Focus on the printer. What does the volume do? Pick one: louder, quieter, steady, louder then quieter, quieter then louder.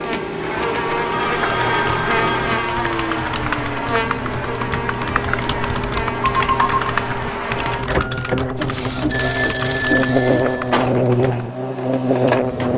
steady.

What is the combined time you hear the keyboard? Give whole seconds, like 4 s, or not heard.
10 s.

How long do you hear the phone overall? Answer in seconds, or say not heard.
4 s.